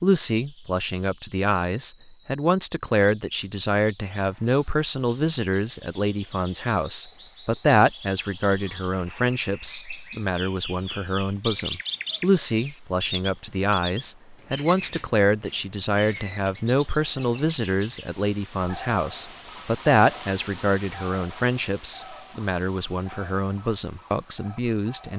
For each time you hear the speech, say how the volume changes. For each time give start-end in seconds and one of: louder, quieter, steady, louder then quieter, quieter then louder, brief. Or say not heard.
0.0-25.1 steady.